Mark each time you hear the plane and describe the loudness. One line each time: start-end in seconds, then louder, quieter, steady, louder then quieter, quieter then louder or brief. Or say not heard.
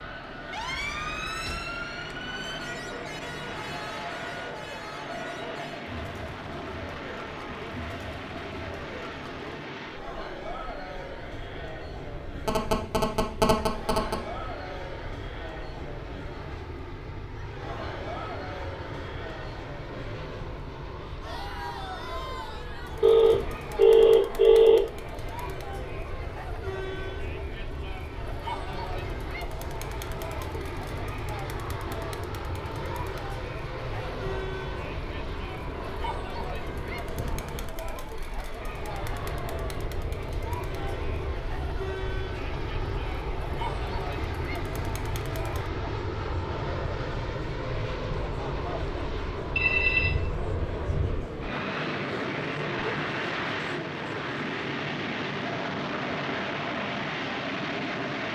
0.0-58.3 louder.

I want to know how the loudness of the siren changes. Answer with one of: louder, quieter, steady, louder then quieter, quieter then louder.
quieter.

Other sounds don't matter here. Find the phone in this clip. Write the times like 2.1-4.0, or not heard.
12.4-14.2, 23.0-24.8, 49.5-51.1.